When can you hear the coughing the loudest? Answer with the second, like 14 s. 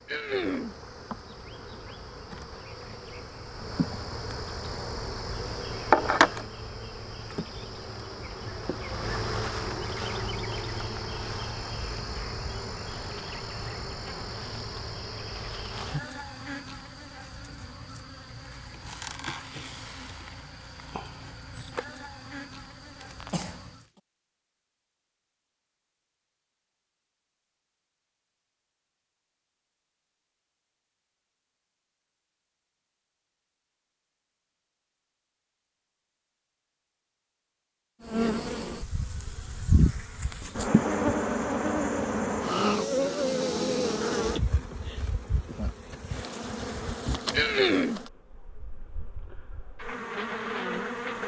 48 s.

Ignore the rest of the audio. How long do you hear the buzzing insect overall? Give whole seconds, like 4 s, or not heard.
37 s.